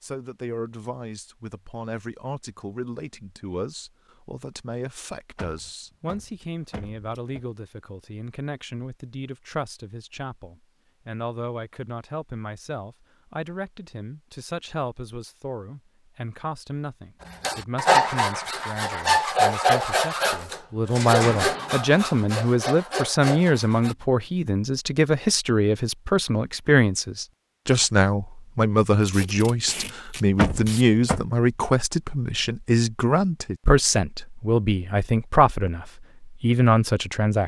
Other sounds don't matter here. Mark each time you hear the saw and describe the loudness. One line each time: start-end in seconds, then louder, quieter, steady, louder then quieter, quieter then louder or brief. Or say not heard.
17.2-23.9 quieter.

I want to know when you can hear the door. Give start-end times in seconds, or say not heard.
5.3-7.5, 20.4-21.8, 30.4-31.2.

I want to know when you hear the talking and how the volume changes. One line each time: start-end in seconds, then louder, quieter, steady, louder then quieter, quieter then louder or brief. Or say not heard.
0.0-37.4 louder.